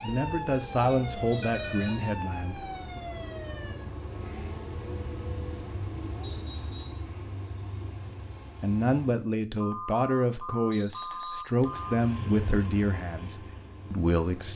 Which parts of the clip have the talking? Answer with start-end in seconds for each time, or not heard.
0.0-3.0, 8.6-14.5.